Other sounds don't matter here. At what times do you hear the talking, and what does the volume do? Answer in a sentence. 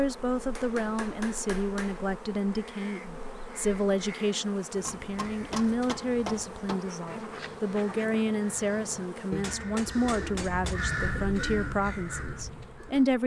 You can hear the talking from 0.0 to 13.2 s, at a steady volume.